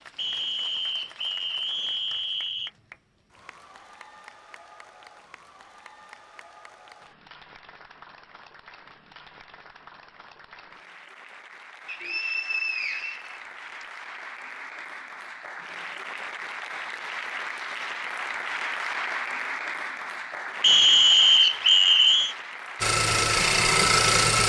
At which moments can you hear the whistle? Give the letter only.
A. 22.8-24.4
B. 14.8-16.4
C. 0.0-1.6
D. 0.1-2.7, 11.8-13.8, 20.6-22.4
D.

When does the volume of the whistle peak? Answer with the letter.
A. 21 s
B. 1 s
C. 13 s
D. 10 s
A.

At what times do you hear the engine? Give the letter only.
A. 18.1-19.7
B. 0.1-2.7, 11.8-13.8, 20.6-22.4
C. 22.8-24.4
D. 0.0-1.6
C.